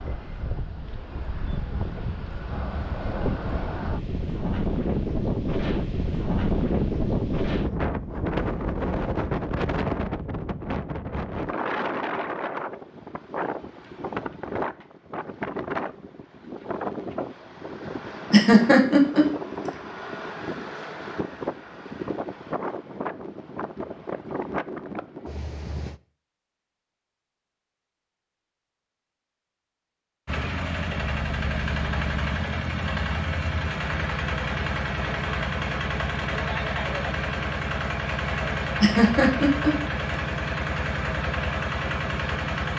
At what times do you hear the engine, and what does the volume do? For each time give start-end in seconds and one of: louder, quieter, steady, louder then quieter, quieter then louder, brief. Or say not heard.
30.2-42.7 steady.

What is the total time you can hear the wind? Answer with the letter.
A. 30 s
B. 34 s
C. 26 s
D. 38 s
C.